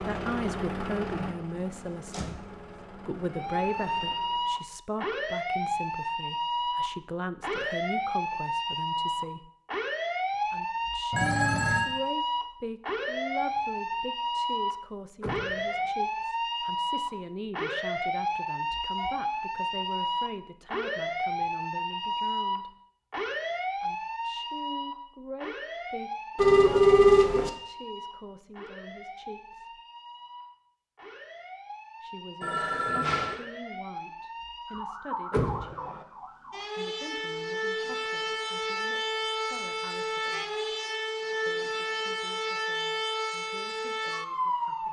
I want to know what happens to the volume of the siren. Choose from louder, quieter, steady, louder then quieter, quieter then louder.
quieter then louder.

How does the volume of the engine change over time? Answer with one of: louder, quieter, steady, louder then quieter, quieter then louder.
quieter.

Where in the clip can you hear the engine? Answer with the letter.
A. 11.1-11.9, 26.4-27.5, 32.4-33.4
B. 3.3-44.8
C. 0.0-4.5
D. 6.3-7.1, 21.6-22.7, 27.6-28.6
C.